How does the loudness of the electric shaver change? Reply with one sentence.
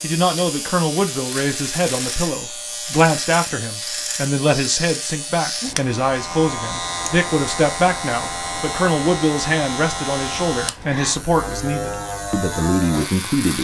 The volume of the electric shaver stays about the same.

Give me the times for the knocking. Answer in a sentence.
The knocking can't be heard in this clip.